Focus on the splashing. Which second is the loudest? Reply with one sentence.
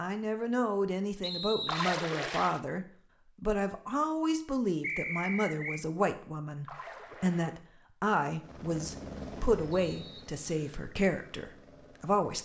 The loudest moment of the splashing is at 2 seconds.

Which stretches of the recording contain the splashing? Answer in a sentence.
You can hear the splashing from 1.6 to 2.6 s and from 6.7 to 7.6 s.